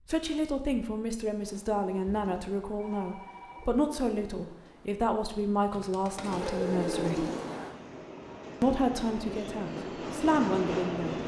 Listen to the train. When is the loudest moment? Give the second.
11 s.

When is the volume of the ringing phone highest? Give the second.
7 s.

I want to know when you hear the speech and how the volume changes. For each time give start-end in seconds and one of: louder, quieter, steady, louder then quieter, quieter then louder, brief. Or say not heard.
0.1-7.2 steady
8.6-11.2 brief.